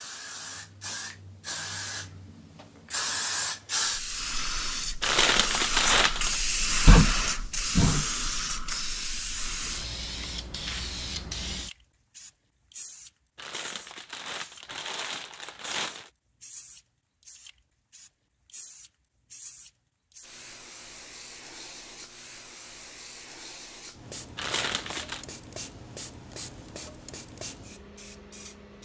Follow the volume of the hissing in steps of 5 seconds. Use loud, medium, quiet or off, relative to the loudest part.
medium, loud, medium, quiet, quiet, quiet.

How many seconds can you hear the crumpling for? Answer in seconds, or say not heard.
5 s.